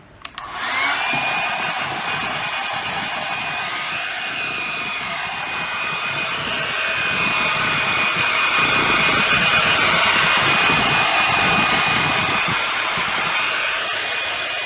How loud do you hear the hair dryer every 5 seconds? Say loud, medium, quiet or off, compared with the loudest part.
medium, loud, loud.